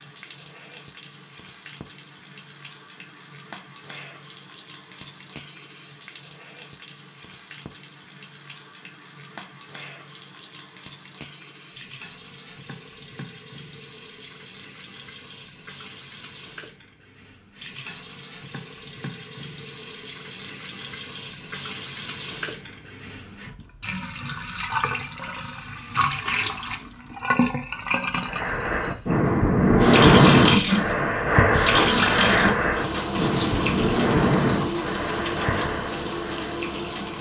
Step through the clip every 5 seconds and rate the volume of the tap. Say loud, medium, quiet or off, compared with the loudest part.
quiet, quiet, quiet, quiet, medium, medium, loud, medium.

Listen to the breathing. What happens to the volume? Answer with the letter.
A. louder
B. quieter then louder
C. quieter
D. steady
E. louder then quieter
C.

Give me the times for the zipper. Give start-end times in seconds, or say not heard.
31.8-32.5.